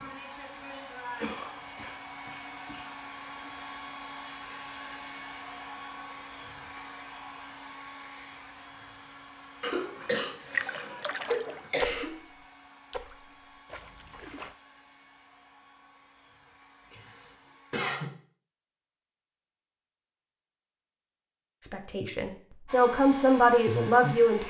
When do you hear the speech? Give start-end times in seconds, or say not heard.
21.6-24.4.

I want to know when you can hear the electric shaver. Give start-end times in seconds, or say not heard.
not heard.